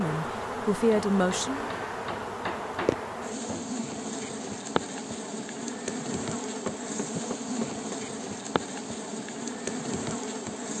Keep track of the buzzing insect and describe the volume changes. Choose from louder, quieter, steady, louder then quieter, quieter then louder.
steady.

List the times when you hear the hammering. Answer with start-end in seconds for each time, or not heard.
0.9-3.7, 6.5-8.0.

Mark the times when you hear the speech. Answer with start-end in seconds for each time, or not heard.
0.0-1.7.